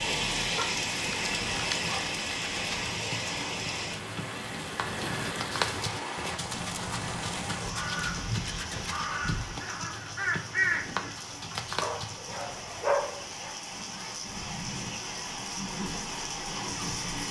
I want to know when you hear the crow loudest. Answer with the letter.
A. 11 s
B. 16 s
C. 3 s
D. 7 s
A.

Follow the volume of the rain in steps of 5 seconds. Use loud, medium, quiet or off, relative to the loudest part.
loud, medium, medium, loud.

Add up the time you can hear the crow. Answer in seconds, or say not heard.
5 s.